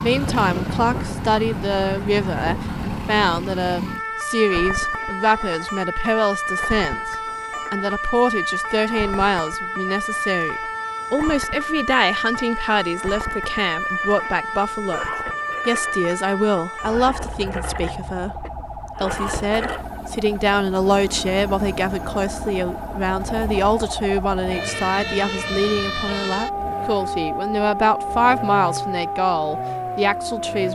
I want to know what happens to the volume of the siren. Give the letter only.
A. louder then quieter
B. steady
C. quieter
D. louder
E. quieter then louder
E.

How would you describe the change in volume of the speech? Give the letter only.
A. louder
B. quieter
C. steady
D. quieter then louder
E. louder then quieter
C.